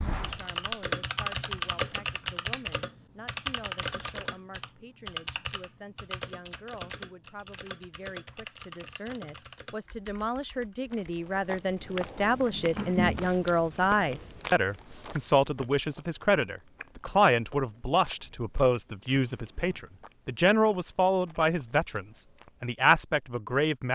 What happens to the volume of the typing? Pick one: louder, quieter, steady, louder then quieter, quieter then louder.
quieter.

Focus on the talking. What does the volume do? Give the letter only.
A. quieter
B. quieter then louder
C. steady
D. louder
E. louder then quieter
D.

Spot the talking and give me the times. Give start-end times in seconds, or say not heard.
0.2-23.9.